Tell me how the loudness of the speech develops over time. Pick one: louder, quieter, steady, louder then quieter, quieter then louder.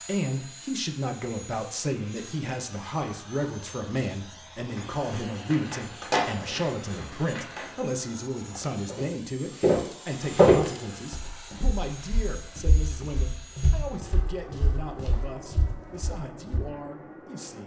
quieter.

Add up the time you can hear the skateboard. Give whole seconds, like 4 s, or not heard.
3 s.